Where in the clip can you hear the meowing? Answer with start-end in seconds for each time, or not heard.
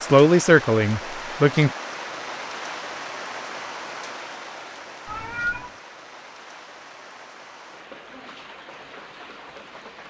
5.0-5.7.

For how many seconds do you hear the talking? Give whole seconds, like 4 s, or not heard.
2 s.